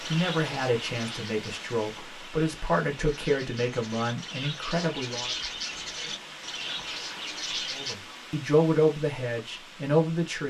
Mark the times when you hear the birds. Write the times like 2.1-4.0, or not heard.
0.0-8.0.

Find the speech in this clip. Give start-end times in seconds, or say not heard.
0.1-5.3, 7.7-10.4.